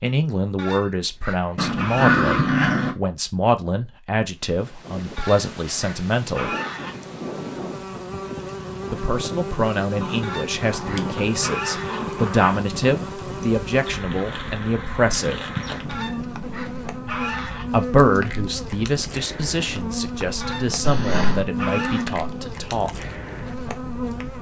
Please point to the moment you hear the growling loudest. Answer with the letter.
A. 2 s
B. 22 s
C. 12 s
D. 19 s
A.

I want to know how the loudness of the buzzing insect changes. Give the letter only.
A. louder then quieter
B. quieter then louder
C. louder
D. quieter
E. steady
E.